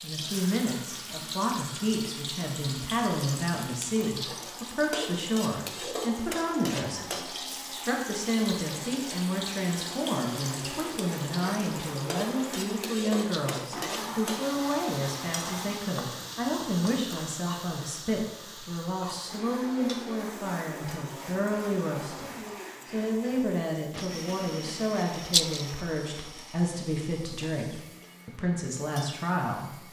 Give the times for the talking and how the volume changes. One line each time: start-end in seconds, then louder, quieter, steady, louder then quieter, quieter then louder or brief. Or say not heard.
0.0-29.8 steady.